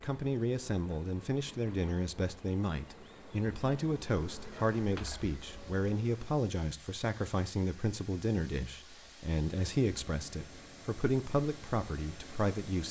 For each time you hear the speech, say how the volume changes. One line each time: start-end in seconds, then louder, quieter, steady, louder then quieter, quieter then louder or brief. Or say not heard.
0.0-12.8 steady.